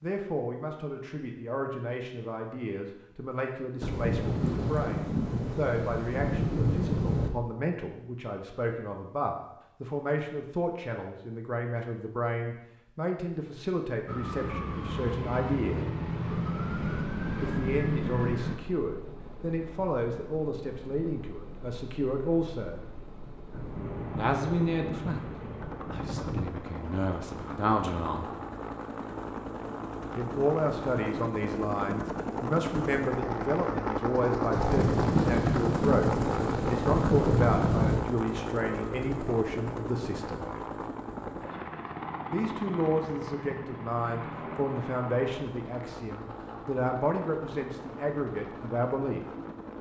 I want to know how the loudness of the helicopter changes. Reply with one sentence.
The loudness of the helicopter goes up, then down.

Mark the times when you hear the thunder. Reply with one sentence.
You can hear the thunder from 3.8 to 7.3 s, from 23.5 to 26.6 s and from 34.5 to 38.0 s.